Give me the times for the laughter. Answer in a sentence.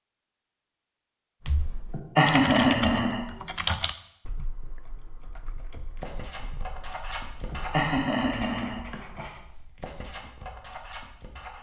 The laughter can be heard from 1.9 to 3.2 s and from 7.5 to 9.2 s.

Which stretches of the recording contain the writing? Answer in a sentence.
The writing can be heard from 5.8 to 11.5 s.